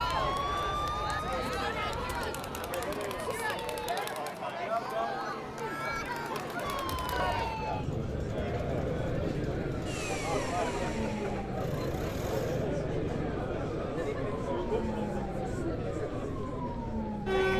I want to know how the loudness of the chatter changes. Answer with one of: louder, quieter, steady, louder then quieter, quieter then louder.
steady.